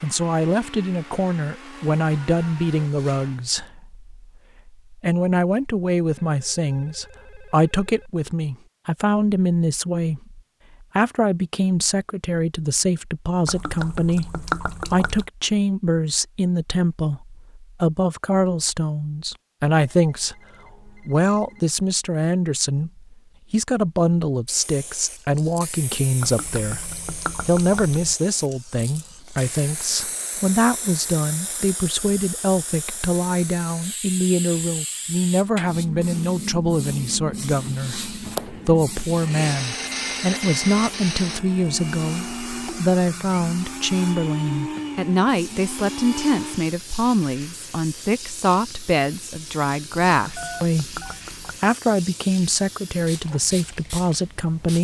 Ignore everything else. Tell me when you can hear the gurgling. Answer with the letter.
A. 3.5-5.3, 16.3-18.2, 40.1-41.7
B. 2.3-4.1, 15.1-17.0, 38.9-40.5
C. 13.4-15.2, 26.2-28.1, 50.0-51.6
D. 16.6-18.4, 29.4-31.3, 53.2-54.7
C.